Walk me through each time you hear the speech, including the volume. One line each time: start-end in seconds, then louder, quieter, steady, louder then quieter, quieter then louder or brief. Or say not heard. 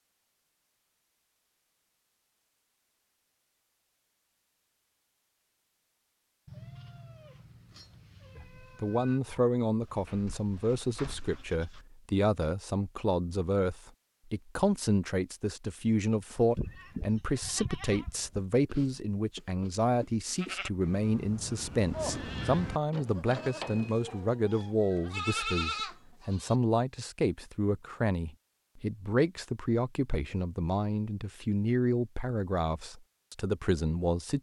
8.3-34.3 steady.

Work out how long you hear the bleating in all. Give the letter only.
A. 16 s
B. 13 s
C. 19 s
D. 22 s
B.